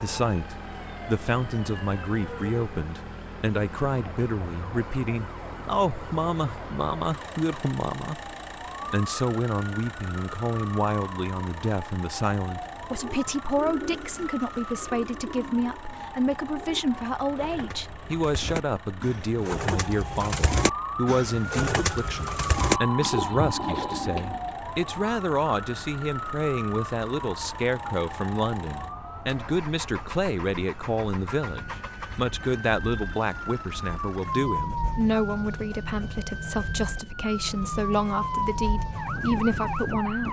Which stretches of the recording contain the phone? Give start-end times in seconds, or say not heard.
22.6-24.0.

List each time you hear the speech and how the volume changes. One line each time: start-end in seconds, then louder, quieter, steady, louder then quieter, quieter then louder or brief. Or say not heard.
0.0-8.2 steady
8.9-40.2 steady.